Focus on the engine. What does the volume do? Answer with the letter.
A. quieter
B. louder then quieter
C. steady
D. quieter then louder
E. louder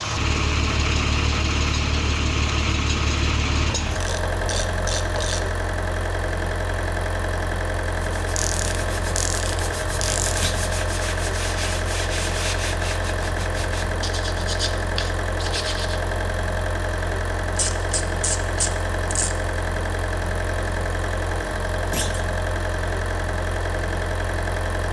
C.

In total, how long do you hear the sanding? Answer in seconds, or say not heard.
8 s.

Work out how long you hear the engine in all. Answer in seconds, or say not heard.
25 s.